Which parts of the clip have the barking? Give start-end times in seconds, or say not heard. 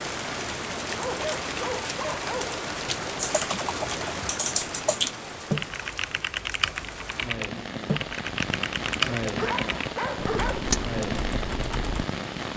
0.9-2.6, 9.3-10.7.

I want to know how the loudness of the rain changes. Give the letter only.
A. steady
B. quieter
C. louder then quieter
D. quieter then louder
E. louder
D.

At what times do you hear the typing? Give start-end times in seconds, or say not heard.
3.1-12.1.